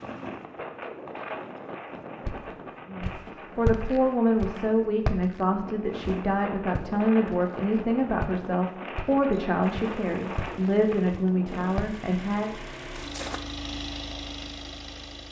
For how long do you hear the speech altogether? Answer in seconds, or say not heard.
10 s.